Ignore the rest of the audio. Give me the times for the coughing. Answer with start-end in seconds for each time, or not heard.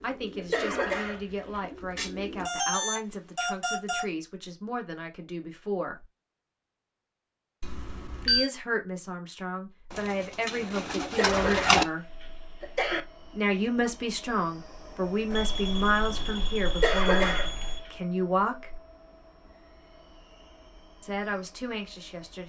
0.3-1.6, 11.0-13.1, 16.6-17.5.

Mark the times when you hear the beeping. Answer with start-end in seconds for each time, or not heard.
1.9-4.0, 7.6-8.5, 15.3-17.8.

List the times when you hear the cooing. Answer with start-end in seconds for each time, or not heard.
0.0-2.5, 9.9-11.8.